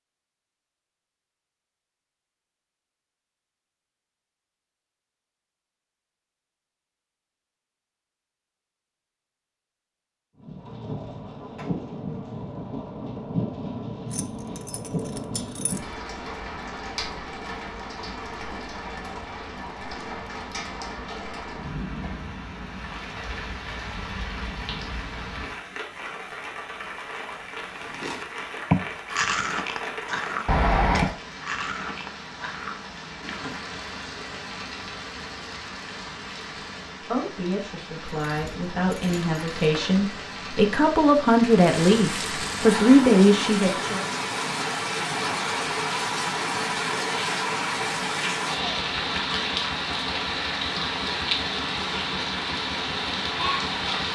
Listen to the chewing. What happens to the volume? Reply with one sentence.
The loudness of the chewing goes down.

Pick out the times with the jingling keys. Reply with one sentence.
You can hear the jingling keys from 14.1 to 15.8 s, from 30.4 to 31.1 s and from 38.0 to 40.0 s.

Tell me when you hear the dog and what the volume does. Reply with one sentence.
The dog can't be heard in this clip.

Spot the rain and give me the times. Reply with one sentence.
The rain can be heard from 10.3 to 54.1 s.